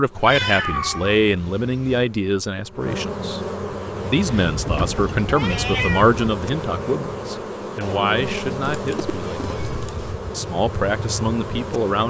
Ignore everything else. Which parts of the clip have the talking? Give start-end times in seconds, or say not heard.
0.0-3.4, 4.0-12.0.